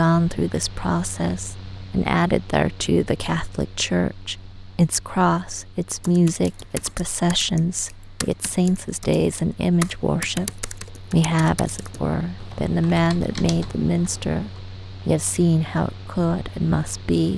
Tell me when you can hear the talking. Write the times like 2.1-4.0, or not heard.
0.0-17.3.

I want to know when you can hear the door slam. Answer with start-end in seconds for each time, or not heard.
not heard.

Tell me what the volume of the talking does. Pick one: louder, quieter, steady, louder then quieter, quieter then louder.
steady.